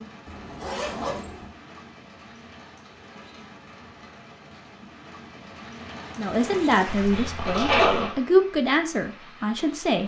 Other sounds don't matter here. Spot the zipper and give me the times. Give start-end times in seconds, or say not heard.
0.2-1.4, 6.8-8.2.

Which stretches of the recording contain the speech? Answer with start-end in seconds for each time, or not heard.
6.2-10.0.